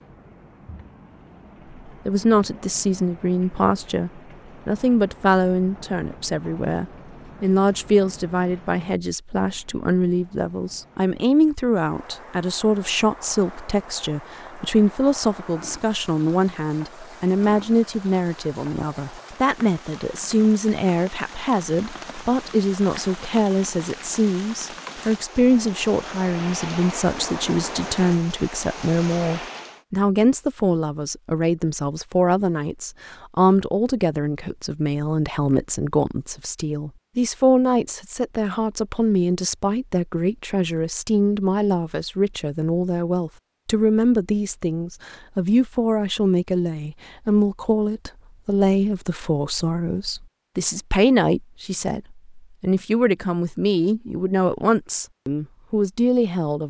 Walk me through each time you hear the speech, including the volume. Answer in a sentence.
You can hear the speech from 1.9 to 56.6 s, at a steady volume.